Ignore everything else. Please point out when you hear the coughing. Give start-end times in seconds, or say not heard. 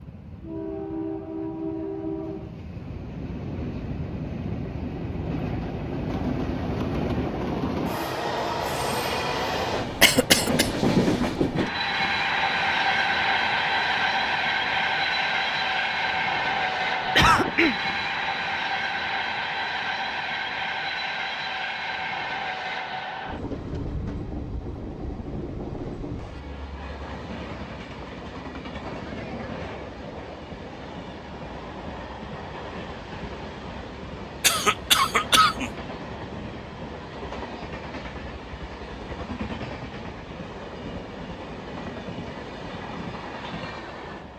10.0-10.7, 17.1-17.8, 34.4-35.7.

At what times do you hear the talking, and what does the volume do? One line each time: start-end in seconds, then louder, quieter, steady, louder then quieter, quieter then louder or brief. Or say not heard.
not heard.